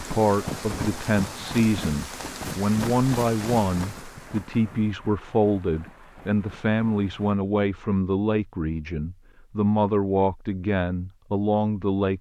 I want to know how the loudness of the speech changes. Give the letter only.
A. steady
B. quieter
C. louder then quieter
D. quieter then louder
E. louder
A.